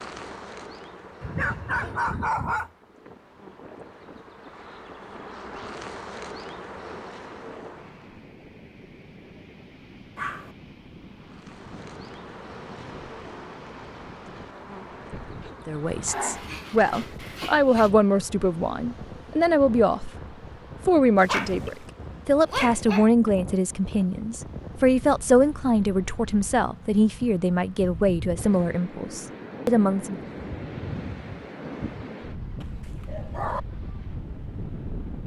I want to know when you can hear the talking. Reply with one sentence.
You can hear the talking from 15.7 to 20.1 s and from 20.9 to 30.1 s.